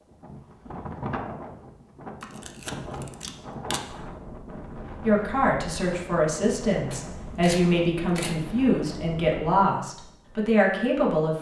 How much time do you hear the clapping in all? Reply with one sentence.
The clapping can't be heard in this clip.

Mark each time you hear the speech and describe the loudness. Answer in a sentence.
The speech can be heard from 5.0 to 11.3 s, at a steady volume.